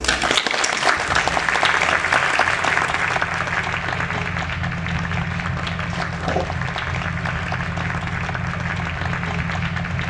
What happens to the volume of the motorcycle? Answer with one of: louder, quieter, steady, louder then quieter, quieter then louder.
louder.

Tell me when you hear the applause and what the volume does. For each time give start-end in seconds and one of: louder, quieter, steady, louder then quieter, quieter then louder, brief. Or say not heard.
0.0-10.0 quieter.